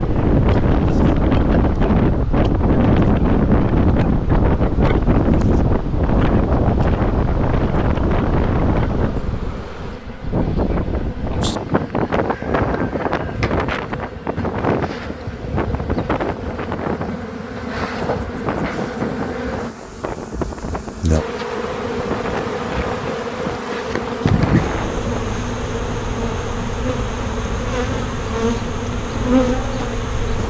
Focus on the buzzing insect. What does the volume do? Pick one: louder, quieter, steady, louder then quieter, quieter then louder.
louder.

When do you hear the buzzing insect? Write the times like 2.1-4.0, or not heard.
0.0-30.4.